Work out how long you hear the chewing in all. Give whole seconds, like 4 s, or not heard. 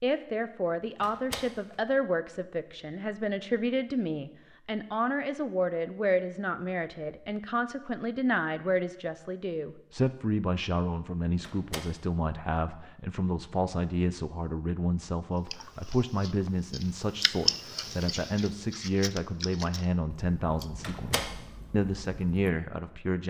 7 s.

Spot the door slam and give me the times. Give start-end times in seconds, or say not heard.
1.0-1.8, 11.4-11.8, 20.8-21.3.